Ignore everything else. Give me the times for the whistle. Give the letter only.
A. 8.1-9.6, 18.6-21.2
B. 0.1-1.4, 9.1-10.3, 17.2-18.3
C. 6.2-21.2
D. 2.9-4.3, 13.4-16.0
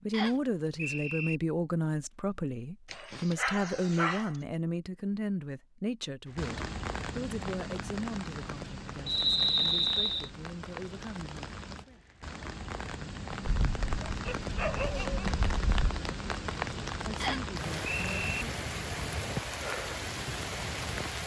B.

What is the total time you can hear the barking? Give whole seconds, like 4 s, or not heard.
4 s.